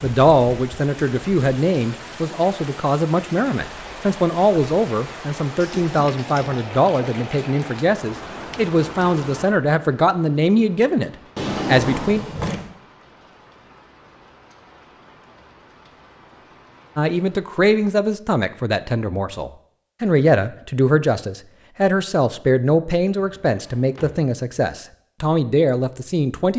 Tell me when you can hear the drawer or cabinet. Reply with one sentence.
You can hear the drawer or cabinet from 5.6 to 6.6 s, from 11.3 to 12.7 s and from 23.1 to 24.2 s.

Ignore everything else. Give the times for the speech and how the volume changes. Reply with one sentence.
You can hear the speech from 0.0 to 12.2 s, at a steady volume; and from 16.9 to 26.5 s, at a steady volume.